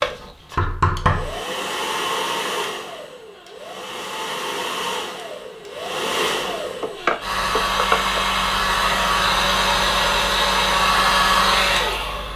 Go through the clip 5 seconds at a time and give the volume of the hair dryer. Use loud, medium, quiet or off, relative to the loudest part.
medium, loud, loud.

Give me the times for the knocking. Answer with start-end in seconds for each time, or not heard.
0.6-1.4, 6.8-8.2.